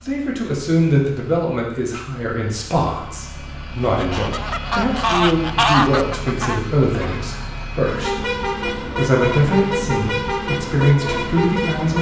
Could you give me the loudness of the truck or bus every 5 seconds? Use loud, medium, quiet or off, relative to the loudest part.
quiet, loud, loud.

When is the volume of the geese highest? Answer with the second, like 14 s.
6 s.